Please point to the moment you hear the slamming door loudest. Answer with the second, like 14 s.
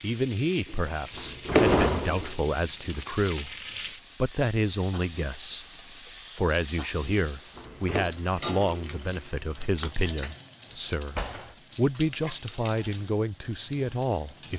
2 s.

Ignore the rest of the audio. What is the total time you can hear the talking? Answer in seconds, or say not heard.
13 s.